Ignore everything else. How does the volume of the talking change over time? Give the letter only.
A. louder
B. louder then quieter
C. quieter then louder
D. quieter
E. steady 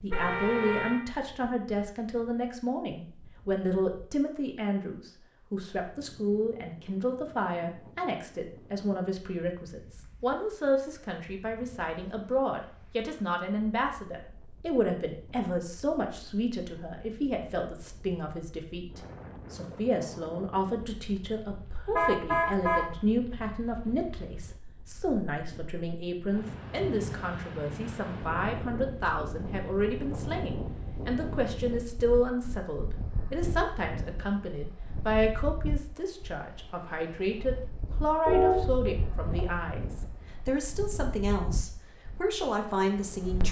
E.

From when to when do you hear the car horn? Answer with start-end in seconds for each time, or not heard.
0.1-1.0, 21.9-22.9, 38.2-39.6.